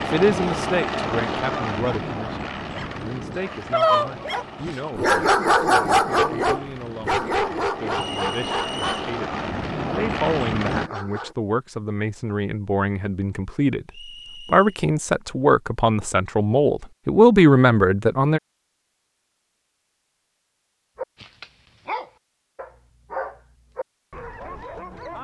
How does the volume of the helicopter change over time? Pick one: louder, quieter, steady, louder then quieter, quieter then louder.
quieter then louder.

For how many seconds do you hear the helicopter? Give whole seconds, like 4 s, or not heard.
11 s.